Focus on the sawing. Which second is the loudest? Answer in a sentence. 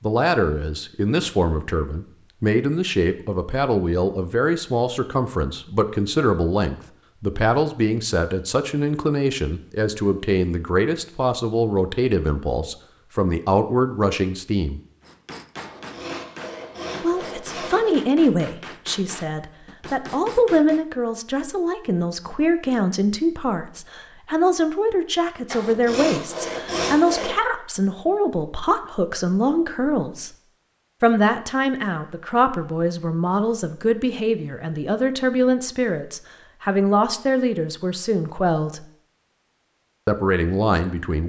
The volume of the sawing peaks at 27 seconds.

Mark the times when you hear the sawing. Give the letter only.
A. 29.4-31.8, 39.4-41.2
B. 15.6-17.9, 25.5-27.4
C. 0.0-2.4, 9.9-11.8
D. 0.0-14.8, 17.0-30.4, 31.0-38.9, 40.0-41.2
B.